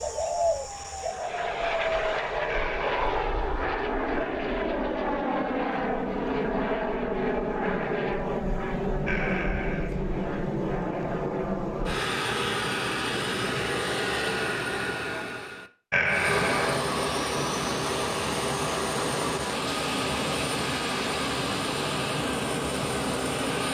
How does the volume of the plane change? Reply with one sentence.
The loudness of the plane stays about the same.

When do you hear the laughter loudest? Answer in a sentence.
The volume of the laughter peaks at 16 seconds.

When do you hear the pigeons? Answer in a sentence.
The pigeons can be heard from 0.0 to 2.4 s.